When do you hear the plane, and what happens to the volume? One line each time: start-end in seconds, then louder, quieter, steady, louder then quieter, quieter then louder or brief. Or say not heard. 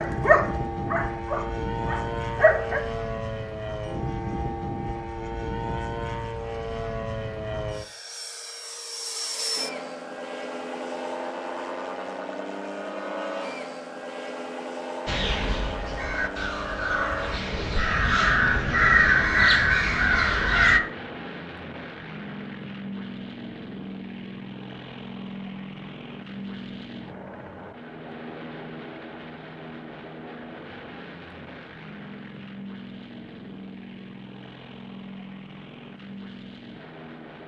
0.0-37.4 quieter.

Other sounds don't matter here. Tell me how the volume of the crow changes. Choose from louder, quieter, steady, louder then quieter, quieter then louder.
louder.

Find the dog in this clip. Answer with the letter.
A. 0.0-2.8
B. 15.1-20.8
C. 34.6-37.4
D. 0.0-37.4
A.